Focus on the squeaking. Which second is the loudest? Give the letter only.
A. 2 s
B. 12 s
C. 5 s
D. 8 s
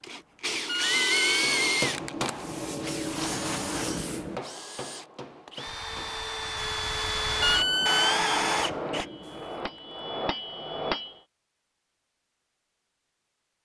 D.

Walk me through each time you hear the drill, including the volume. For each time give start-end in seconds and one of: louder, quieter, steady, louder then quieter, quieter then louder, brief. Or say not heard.
0.0-9.1 quieter then louder.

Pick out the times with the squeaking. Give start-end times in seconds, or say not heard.
0.7-1.5, 7.4-8.3.